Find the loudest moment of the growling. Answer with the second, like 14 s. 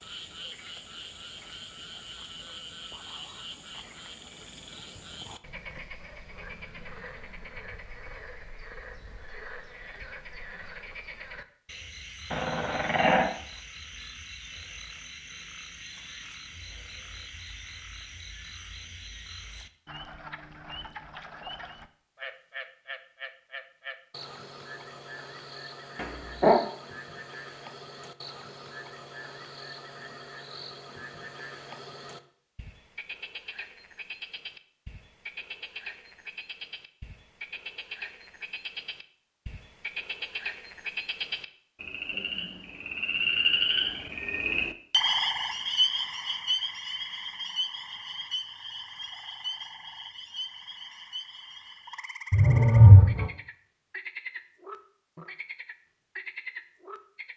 53 s.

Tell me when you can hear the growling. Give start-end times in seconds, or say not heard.
12.3-13.3, 25.9-26.6, 52.3-53.3.